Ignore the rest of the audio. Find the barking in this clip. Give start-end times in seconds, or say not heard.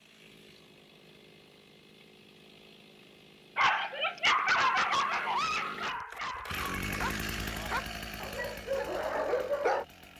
3.5-9.8.